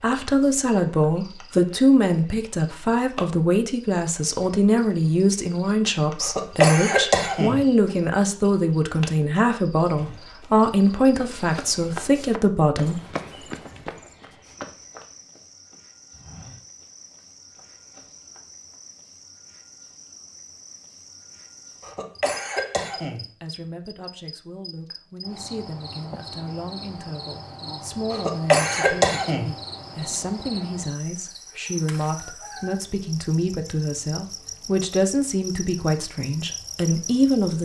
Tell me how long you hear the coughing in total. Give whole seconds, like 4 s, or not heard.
4 s.